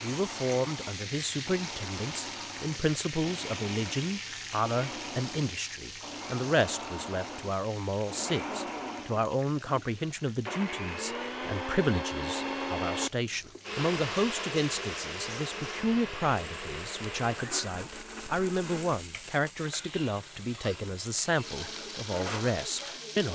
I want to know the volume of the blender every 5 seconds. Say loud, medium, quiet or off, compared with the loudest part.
medium, medium, loud, medium, medium.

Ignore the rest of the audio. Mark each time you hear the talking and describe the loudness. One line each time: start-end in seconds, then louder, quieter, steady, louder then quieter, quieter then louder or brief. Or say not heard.
0.0-23.3 steady.